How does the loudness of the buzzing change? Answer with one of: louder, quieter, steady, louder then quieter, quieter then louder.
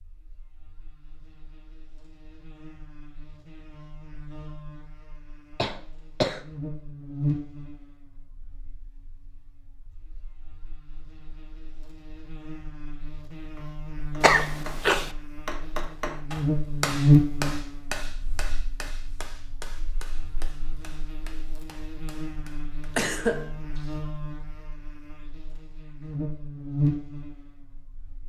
louder then quieter.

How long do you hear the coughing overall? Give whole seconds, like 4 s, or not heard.
3 s.